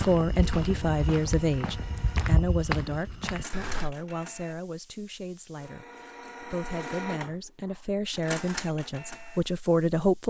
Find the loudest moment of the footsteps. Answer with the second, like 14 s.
2 s.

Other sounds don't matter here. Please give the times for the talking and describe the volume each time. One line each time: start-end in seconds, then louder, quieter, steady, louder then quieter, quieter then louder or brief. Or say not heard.
0.0-10.2 quieter then louder.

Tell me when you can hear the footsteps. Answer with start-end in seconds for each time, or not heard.
0.0-4.0.